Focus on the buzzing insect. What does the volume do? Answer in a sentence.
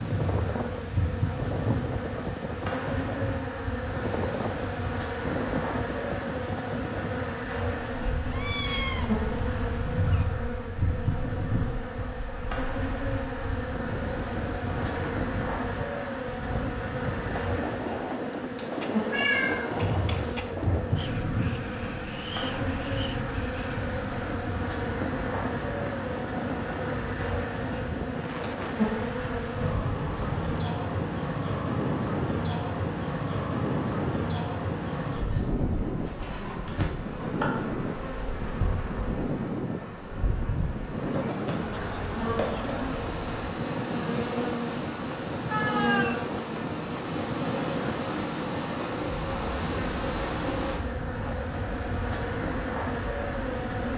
The volume of the buzzing insect stays about the same.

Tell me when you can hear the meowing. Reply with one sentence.
You can hear the meowing from 8.2 to 10.2 s, from 18.8 to 20.5 s and from 45.5 to 46.1 s.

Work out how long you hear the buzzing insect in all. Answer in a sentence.
The buzzing insect can be heard for 54 seconds in total.